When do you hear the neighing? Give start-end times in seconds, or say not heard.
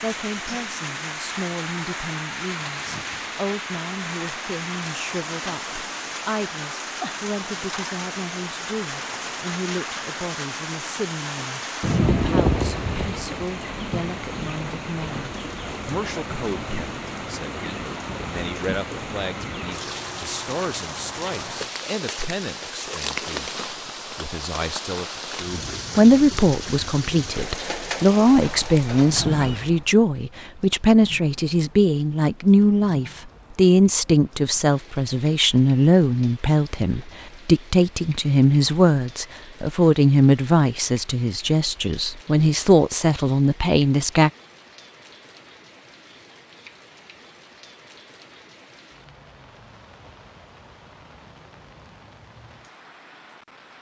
11.8-13.2, 28.4-29.6.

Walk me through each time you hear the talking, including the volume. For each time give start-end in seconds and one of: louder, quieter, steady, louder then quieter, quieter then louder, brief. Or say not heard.
0.0-44.3 louder.